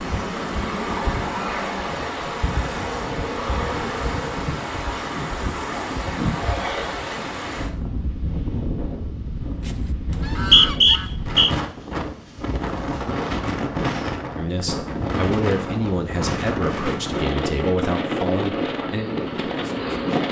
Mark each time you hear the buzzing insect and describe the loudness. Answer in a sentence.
The buzzing insect can be heard from 0.0 to 4.5 s, getting quieter then louder; and briefly from 18.7 to 20.2 s.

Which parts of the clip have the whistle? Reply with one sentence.
The whistle can be heard from 10.1 to 11.5 s.